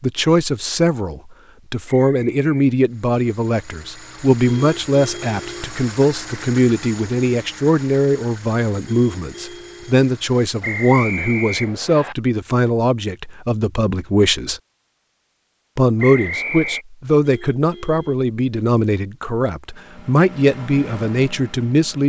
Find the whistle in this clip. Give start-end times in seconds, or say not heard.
1.9-2.5, 10.6-12.2, 15.9-16.9.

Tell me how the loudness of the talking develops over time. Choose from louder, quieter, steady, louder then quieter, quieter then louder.
steady.